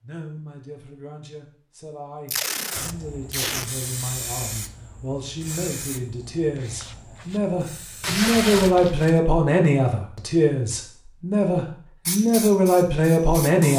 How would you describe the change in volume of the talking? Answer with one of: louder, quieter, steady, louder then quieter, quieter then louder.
louder.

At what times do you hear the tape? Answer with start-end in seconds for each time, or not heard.
2.3-3.6, 8.0-9.2.